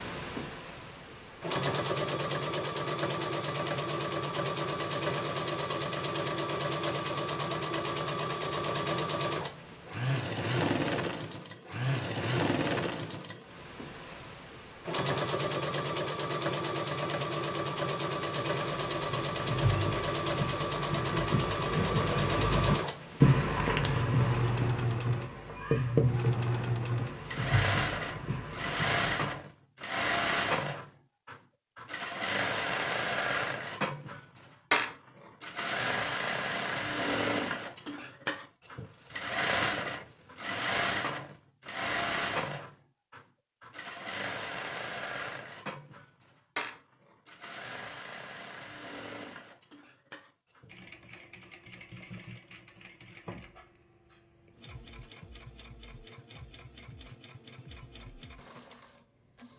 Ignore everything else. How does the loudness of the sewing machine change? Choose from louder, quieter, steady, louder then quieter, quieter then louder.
quieter.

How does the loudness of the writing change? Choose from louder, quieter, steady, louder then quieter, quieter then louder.
louder then quieter.